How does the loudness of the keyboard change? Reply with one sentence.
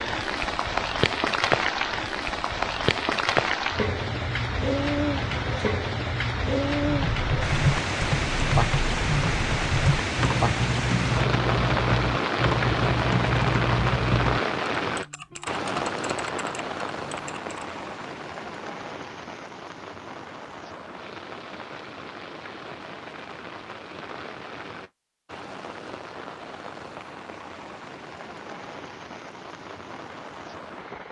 The volume of the keyboard goes down.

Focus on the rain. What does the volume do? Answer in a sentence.
The loudness of the rain goes down.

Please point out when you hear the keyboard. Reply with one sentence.
The keyboard can be heard from 6.8 to 17.9 s.